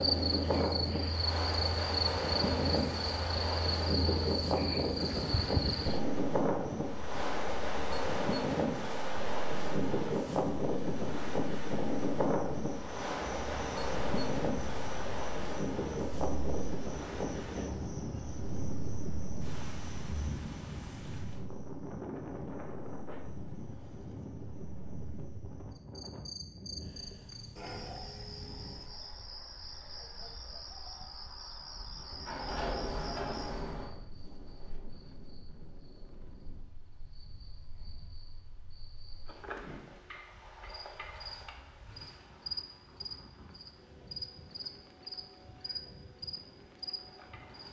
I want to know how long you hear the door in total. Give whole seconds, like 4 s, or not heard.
2 s.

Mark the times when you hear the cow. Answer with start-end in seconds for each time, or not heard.
not heard.